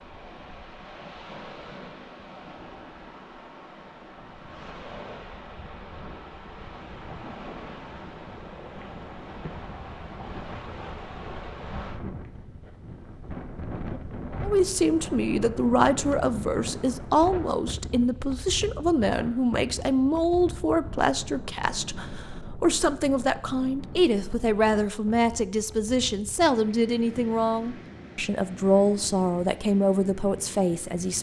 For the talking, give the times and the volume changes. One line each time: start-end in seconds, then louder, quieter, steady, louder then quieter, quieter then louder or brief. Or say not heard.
14.4-31.1 steady.